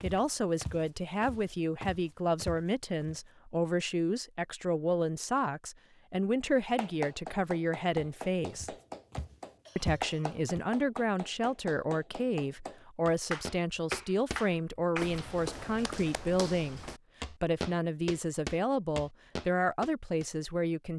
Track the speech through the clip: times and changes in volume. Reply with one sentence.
The speech can be heard from 0.0 to 8.8 s, at a steady volume; and from 9.8 to 20.9 s, at a steady volume.